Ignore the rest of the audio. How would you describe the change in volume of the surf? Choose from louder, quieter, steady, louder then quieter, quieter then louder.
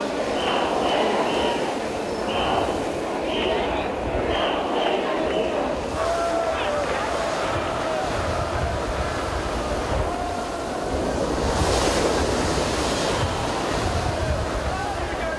louder.